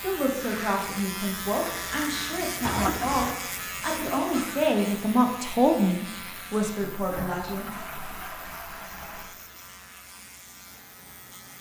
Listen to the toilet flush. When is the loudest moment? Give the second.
3 s.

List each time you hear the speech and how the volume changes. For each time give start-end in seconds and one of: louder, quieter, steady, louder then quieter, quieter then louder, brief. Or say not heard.
0.0-7.7 louder then quieter.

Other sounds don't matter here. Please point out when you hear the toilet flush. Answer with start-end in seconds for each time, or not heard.
2.6-3.4, 6.8-9.3.